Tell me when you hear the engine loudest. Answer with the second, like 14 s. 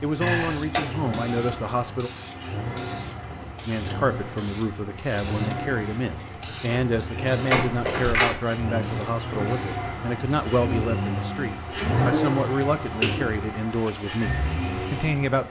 12 s.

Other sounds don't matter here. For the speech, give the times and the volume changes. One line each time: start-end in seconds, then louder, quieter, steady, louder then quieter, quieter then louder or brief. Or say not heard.
0.0-2.1 brief
3.6-15.4 steady.